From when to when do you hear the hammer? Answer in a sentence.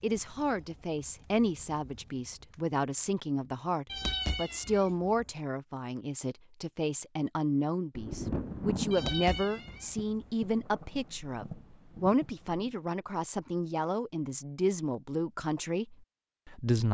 You can't hear the hammer here.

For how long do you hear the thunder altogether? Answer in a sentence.
The thunder can be heard for 5 seconds in total.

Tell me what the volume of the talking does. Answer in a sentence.
The loudness of the talking stays about the same.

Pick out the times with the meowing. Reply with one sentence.
You can hear the meowing from 3.9 to 5.2 s and from 8.9 to 10.1 s.